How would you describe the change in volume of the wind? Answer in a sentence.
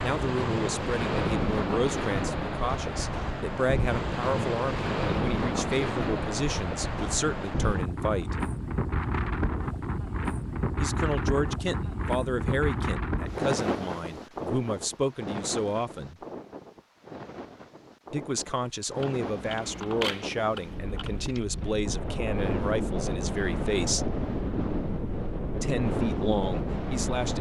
The volume of the wind goes down, then up.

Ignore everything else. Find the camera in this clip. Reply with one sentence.
You can hear the camera from 19.0 to 21.2 s.